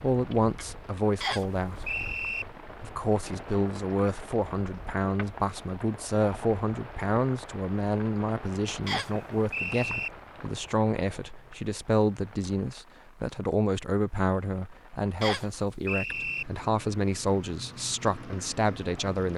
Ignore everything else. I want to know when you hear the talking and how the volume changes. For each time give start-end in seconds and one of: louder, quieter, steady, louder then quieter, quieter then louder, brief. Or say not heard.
0.0-1.9 brief
2.8-19.3 steady.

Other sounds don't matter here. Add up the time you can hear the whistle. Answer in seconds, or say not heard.
4 s.